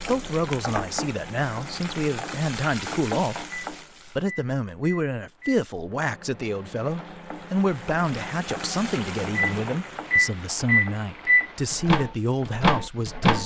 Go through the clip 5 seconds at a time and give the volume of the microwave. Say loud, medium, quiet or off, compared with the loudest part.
quiet, quiet, loud.